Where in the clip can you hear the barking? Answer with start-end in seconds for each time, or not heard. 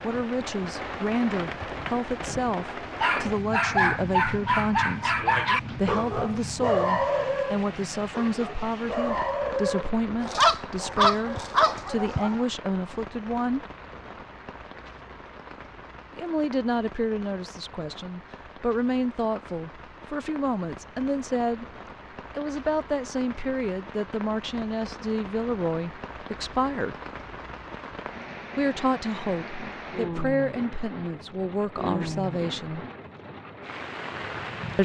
3.0-12.4.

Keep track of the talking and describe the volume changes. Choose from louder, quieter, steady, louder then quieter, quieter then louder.
steady.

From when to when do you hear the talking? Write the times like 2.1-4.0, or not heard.
0.0-13.7, 16.1-21.6, 22.4-27.0, 28.6-32.9.